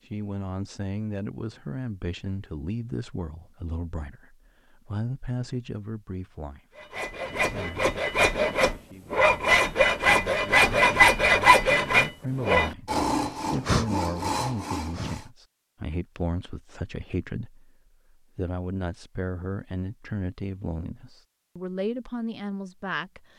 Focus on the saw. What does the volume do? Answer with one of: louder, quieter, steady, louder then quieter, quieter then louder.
louder then quieter.